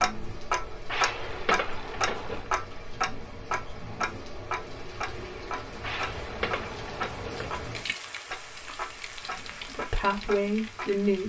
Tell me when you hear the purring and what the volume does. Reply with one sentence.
The purring can't be heard in this clip.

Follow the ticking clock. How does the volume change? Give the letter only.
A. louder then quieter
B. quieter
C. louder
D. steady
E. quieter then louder
B.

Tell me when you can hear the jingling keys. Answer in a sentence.
The jingling keys can be heard from 0.8 to 2.5 s and from 5.8 to 7.5 s.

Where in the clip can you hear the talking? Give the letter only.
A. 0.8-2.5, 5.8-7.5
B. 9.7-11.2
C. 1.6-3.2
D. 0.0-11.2
B.